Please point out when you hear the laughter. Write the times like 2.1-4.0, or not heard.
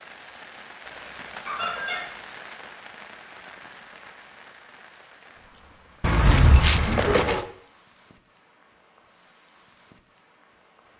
1.4-2.0, 6.8-7.4.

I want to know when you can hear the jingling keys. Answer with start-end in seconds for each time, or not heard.
0.8-2.0, 6.0-7.5.